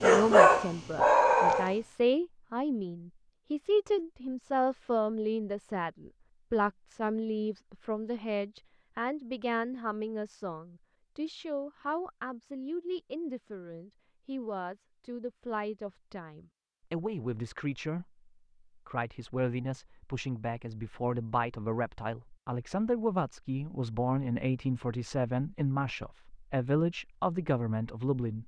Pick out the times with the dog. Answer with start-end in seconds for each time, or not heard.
0.0-1.8.